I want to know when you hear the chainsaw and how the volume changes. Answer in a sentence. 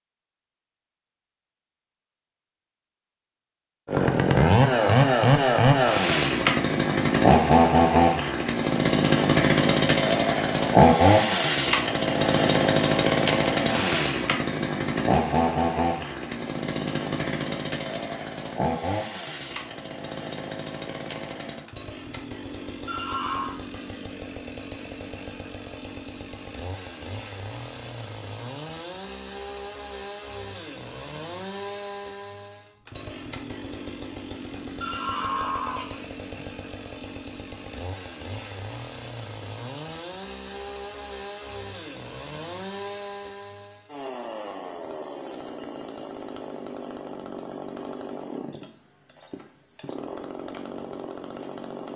You can hear the chainsaw from 3.9 to 51.9 s, getting quieter.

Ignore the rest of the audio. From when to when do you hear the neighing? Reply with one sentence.
The neighing can be heard from 22.9 to 23.6 s and from 34.8 to 36.5 s.